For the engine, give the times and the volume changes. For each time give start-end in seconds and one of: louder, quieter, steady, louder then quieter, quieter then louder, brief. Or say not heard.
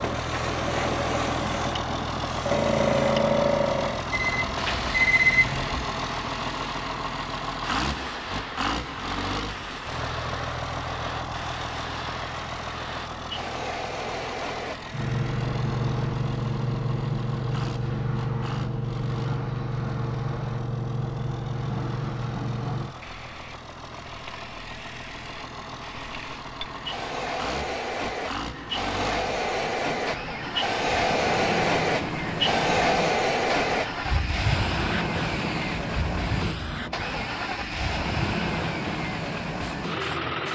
0.0-40.4 quieter then louder.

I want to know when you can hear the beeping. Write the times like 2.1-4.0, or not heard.
4.1-5.8.